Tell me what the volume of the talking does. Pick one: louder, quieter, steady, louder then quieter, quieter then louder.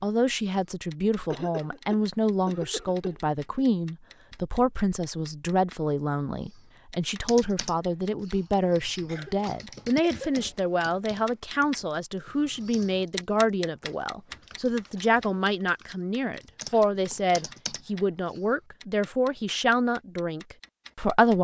steady.